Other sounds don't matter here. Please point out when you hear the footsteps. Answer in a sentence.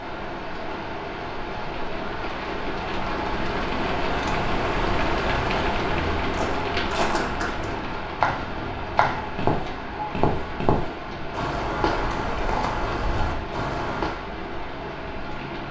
You can hear the footsteps from 6.3 to 14.2 s.